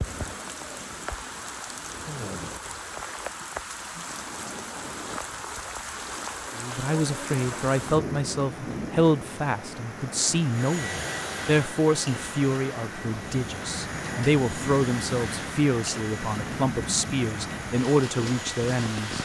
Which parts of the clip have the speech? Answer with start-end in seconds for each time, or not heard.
6.5-19.1.